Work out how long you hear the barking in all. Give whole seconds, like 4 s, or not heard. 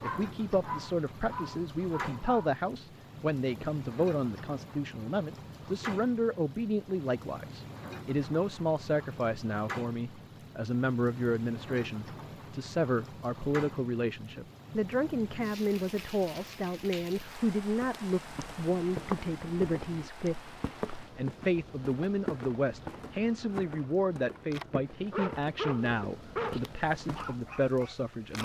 6 s.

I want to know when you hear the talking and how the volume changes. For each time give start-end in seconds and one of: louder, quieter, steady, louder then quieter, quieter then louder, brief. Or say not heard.
0.0-28.4 steady.